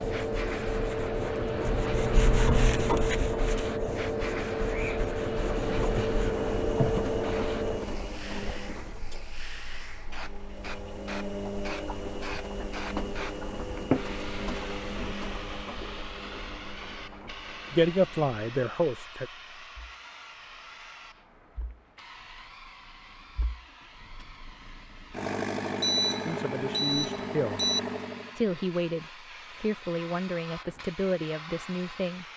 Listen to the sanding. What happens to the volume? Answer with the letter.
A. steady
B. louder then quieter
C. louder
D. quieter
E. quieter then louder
B.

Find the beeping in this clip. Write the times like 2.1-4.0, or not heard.
25.8-27.8.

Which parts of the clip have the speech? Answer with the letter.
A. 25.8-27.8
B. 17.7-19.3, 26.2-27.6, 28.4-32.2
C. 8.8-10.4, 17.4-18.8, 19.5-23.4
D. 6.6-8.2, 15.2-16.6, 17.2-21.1
B.